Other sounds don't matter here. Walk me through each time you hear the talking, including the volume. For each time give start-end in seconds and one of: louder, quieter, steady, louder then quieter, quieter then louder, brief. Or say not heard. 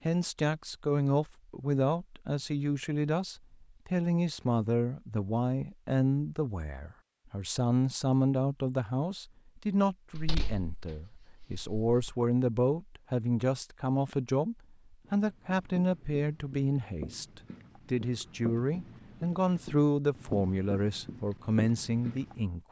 0.1-22.6 steady.